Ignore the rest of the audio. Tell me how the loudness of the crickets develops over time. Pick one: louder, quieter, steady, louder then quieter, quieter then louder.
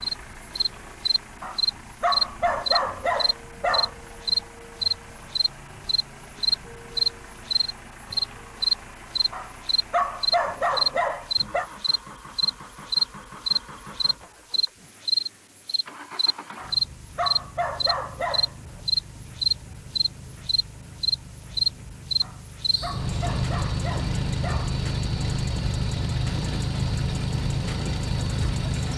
quieter.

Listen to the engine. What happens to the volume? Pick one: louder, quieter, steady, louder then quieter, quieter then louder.
louder.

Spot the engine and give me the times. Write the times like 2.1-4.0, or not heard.
0.0-28.9.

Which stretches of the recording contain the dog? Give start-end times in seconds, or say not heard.
1.4-3.9, 9.3-11.7, 16.6-18.5, 22.2-24.8.